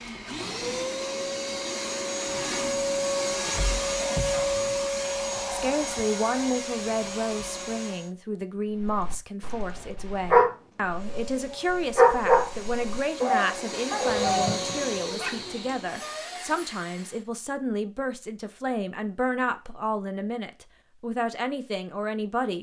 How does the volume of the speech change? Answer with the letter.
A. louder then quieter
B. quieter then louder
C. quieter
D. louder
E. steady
E.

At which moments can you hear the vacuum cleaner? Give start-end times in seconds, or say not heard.
0.0-8.2, 10.9-17.3.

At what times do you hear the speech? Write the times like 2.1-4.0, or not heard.
5.5-22.5.